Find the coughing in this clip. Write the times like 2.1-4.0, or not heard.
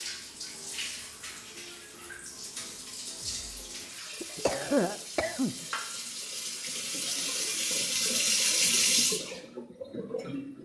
4.2-5.7.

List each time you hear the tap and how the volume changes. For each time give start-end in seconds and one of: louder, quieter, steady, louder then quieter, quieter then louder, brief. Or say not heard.
0.0-10.6 louder.